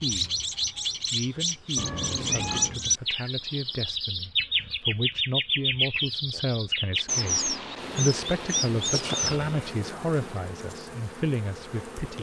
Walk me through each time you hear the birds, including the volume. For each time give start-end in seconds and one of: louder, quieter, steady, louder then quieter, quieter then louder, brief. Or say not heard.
0.0-9.4 steady.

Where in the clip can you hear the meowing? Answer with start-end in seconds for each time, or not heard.
1.8-2.8.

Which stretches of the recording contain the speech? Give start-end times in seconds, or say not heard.
0.0-0.4, 1.1-12.1.